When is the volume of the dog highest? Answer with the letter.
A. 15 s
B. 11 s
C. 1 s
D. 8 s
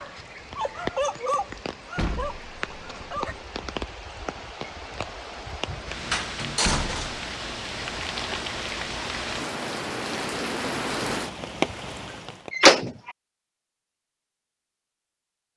C.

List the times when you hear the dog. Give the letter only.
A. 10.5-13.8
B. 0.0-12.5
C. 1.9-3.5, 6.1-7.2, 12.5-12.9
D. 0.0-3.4
D.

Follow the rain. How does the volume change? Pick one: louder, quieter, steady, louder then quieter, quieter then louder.
louder.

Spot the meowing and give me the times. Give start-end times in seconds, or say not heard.
not heard.